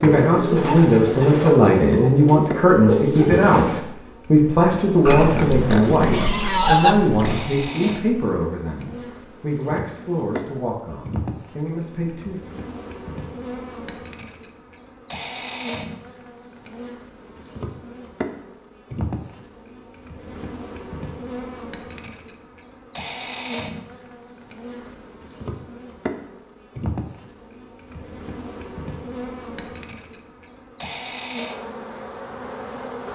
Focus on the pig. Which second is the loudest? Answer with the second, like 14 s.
7 s.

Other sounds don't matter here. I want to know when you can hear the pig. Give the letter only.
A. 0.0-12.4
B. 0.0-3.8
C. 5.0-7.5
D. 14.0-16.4
C.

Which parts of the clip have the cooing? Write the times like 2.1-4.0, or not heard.
0.0-3.8.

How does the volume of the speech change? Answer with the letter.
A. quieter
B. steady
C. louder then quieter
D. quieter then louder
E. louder
A.